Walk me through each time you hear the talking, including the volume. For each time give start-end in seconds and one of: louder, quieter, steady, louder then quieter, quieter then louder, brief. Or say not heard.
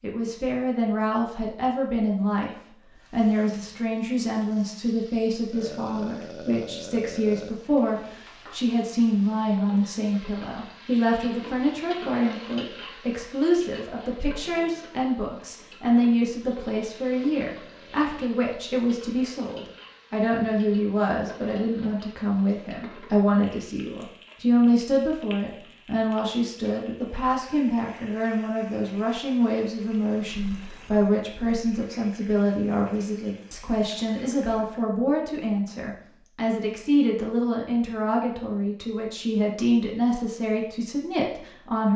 0.0-41.9 steady.